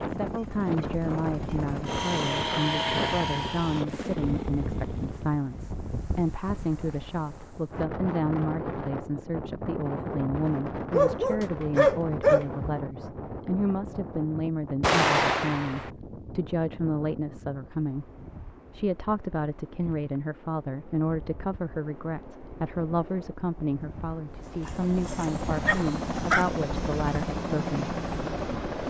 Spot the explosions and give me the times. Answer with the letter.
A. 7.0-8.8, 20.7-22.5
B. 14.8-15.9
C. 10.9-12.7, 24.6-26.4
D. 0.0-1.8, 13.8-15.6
B.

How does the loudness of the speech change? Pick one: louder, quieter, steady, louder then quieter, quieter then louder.
steady.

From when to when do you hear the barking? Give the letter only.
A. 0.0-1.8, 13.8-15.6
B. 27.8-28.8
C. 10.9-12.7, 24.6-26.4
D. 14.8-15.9
C.